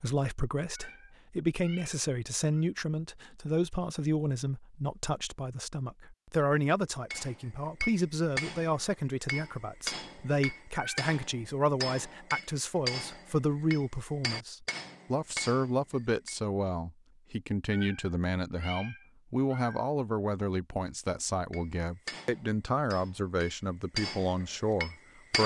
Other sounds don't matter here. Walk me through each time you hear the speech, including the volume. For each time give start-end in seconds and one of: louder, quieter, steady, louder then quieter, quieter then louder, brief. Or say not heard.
0.0-25.4 steady.